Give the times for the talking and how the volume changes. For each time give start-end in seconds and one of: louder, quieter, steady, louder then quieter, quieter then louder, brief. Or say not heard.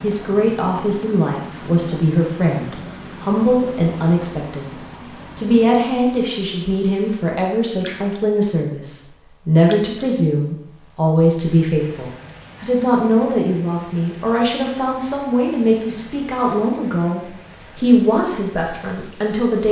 0.0-19.6 steady.